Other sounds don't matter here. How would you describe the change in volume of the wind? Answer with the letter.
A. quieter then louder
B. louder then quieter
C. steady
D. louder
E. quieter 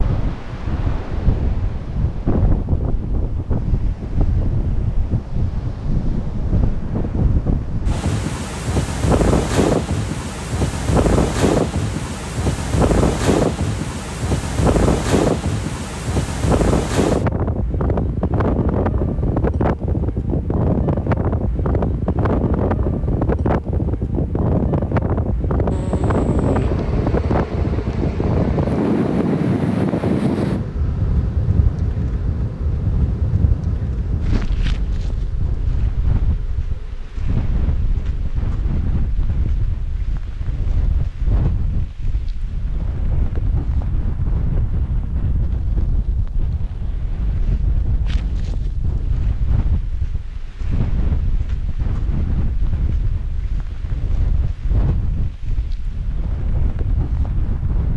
E.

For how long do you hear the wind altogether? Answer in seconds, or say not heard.
58 s.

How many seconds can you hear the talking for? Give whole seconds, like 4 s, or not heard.
not heard.